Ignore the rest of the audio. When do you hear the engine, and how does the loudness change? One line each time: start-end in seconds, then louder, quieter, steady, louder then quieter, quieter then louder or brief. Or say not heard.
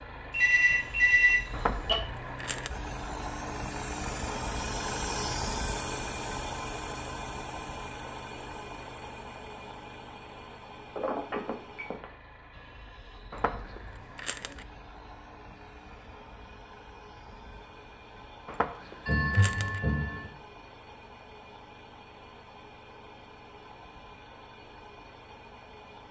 0.0-26.0 quieter.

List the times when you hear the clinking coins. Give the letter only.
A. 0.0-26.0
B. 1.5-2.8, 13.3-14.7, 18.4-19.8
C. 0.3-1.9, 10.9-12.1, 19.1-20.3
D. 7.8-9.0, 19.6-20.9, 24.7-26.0
B.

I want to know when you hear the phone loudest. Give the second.
1 s.